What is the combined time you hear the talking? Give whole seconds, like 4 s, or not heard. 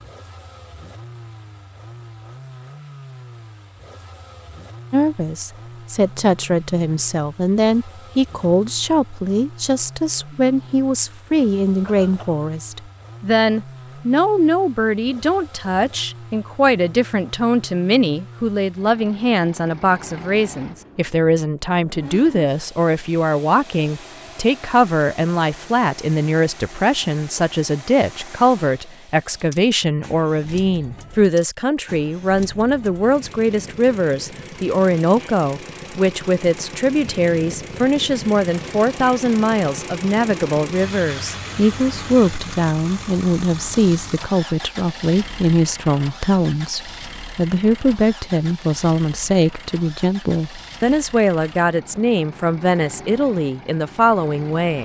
50 s.